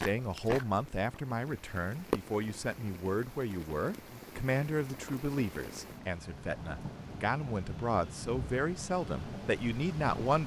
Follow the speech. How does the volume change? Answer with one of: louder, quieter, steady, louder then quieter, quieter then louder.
steady.